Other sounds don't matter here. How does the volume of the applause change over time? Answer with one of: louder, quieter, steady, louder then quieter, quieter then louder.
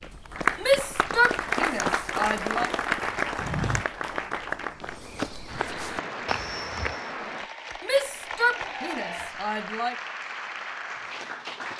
quieter.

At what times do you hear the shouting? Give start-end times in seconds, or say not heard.
0.6-2.7, 7.8-9.9.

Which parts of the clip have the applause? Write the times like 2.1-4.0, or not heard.
0.0-11.7.